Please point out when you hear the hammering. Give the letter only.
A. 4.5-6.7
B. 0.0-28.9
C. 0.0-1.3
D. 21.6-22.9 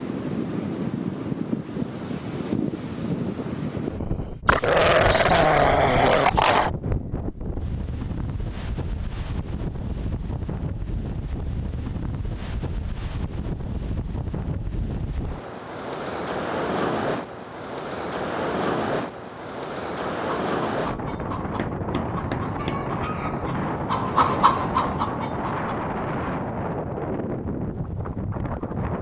D.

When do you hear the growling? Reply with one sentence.
The growling can be heard from 4.5 to 6.7 s.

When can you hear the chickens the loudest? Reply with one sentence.
The volume of the chickens peaks at 24 seconds.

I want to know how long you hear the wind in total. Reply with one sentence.
You can hear the wind for 29 seconds altogether.